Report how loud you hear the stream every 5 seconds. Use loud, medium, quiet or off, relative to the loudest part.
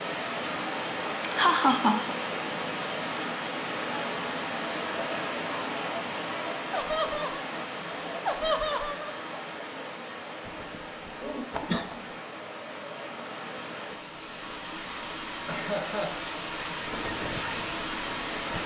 loud, loud, medium, loud.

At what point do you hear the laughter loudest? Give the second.
2 s.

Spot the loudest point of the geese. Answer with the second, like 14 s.
12 s.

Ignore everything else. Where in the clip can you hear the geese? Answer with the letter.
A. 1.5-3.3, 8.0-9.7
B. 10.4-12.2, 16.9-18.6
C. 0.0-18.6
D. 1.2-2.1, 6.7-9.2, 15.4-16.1
B.